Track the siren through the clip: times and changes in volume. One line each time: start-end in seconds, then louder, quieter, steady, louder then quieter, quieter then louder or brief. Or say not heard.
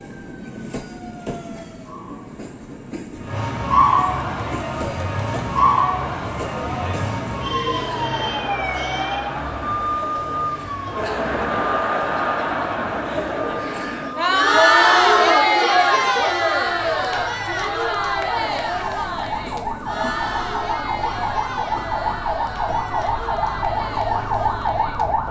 0.0-25.2 quieter then louder.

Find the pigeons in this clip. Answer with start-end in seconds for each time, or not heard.
not heard.